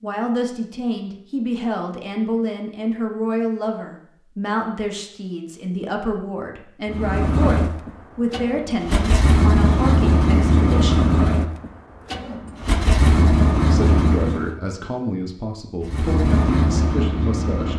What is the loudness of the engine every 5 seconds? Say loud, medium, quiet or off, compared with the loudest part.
off, loud, loud, loud.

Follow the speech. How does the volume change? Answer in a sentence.
The volume of the speech stays about the same.